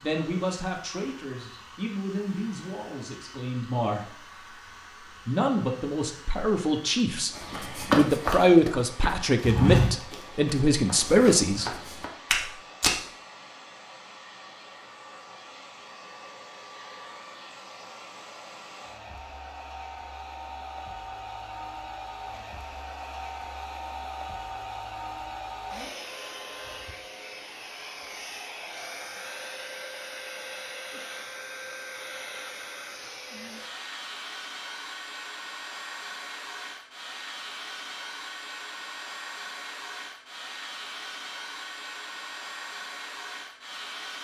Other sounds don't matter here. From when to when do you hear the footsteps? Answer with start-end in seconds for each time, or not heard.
7.3-12.9.